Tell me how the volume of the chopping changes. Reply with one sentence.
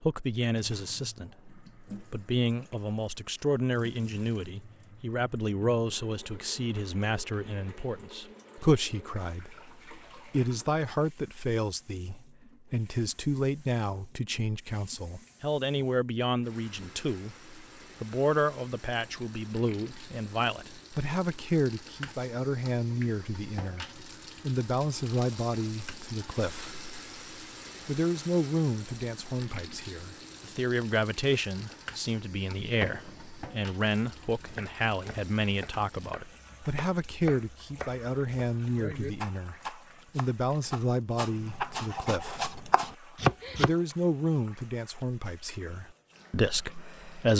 The loudness of the chopping goes down, then up.